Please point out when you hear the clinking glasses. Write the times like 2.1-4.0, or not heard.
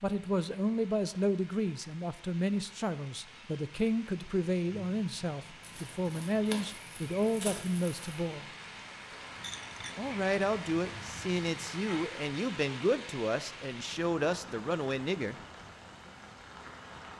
9.4-10.1.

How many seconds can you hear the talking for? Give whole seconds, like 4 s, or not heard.
14 s.